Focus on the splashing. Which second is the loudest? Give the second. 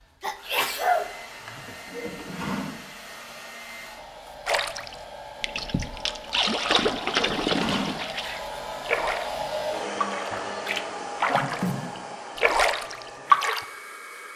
13 s.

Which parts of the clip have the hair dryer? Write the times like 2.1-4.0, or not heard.
0.0-14.3.